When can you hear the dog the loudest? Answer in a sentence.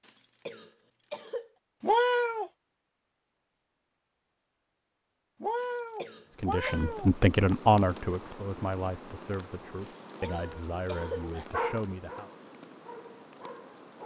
The volume of the dog peaks at 12 seconds.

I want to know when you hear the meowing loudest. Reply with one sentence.
The volume of the meowing peaks at 2 seconds.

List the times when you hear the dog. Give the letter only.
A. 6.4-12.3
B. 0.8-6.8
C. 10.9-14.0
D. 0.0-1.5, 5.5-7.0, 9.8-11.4
C.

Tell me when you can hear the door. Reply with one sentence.
You can't hear the door here.